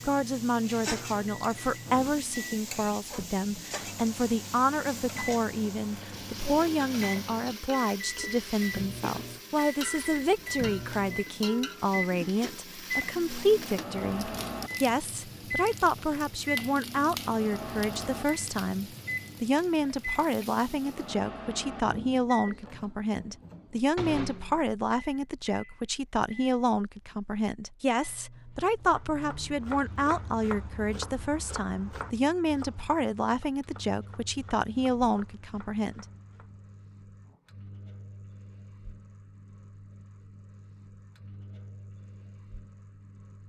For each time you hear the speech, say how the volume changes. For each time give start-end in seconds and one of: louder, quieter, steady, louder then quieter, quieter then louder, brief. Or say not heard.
0.1-36.0 steady.